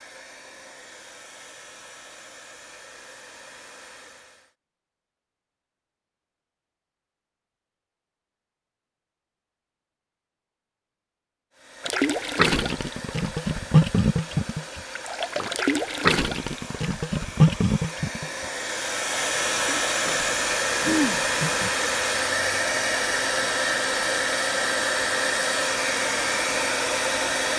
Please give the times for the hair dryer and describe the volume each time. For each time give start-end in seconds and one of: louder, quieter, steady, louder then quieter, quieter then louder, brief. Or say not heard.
0.0-4.5 steady
11.5-27.5 louder.